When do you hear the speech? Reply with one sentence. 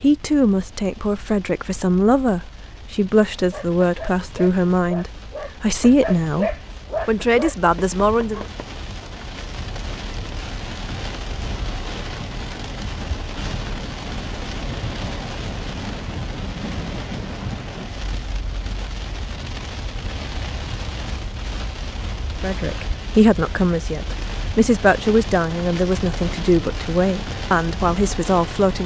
You can hear the speech from 0.0 to 8.4 s and from 22.4 to 28.8 s.